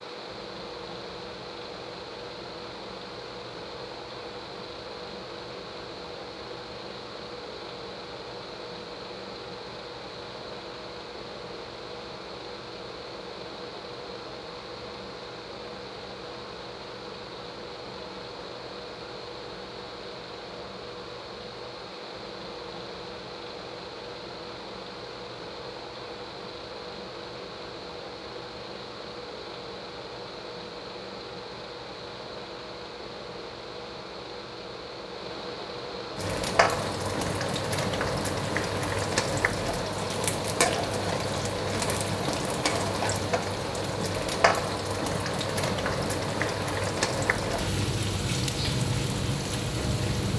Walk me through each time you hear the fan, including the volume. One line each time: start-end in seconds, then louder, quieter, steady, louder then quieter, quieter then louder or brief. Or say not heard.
0.0-50.3 steady.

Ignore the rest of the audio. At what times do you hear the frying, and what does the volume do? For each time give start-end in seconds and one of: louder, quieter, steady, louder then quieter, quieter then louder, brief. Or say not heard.
36.1-50.3 steady.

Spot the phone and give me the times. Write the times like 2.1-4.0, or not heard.
not heard.